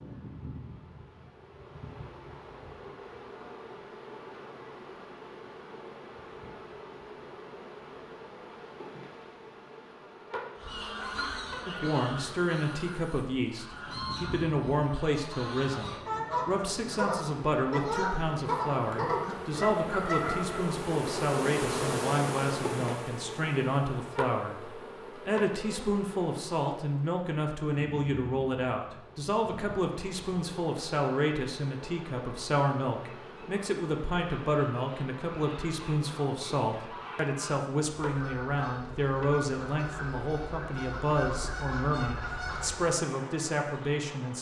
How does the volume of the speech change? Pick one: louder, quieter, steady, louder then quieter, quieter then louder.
steady.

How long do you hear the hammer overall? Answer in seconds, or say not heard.
not heard.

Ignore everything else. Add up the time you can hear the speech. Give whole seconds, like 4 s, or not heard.
33 s.